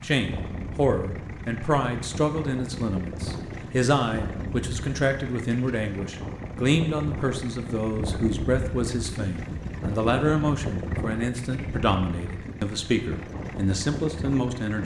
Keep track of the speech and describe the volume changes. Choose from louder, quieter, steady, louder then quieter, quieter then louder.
steady.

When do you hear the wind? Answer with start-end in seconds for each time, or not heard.
0.1-14.7.